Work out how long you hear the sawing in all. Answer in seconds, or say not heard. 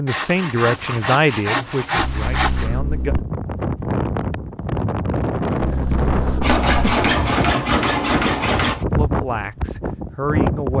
5 s.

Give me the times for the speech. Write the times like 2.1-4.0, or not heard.
0.0-3.1, 8.8-10.7.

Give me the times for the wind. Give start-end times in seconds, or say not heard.
3.0-10.7.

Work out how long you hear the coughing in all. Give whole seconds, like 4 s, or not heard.
3 s.